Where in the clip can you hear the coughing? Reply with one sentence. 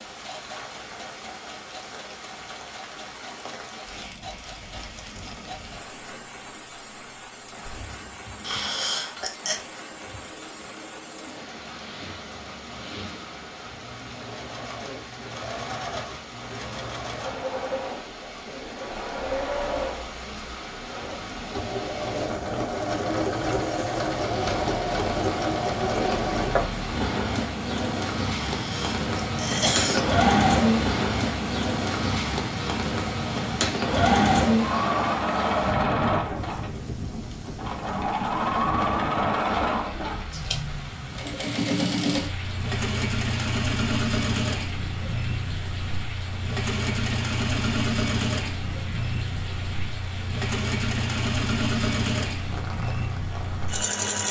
The coughing can be heard from 8.4 to 9.6 s and from 28.4 to 30.2 s.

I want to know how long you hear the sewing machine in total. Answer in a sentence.
You can hear the sewing machine for 54 seconds altogether.